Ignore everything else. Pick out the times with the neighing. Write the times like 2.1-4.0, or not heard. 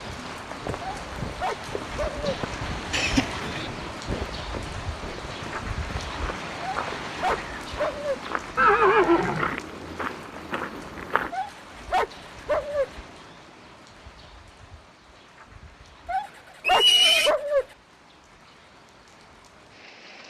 2.9-3.7, 8.6-9.6, 16.6-17.3.